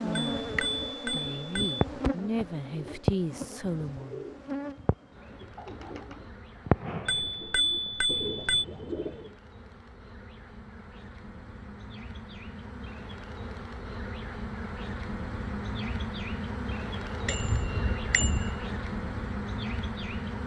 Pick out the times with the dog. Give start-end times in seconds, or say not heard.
not heard.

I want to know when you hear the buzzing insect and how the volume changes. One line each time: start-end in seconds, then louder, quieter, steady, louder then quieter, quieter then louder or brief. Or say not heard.
0.0-20.4 quieter then louder.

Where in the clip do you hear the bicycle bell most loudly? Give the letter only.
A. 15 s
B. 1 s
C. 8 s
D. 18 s
C.